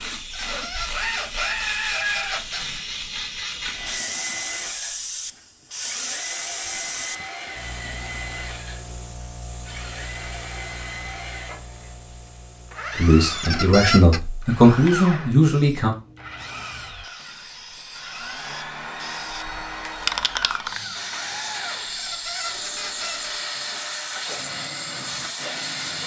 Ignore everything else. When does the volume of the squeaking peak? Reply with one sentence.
The volume of the squeaking peaks at 14 seconds.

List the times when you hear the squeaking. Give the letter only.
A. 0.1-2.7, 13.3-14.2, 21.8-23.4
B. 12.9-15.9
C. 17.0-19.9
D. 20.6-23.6
A.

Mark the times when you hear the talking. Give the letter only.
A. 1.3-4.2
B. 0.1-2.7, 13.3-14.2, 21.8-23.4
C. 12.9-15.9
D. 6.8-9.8
C.